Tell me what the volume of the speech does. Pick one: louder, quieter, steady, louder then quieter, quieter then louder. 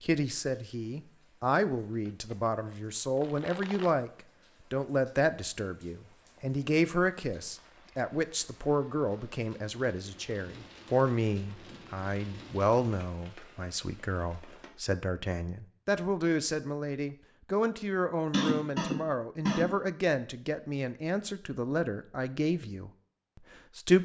steady.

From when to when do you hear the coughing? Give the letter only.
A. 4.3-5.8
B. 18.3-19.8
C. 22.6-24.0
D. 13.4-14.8
B.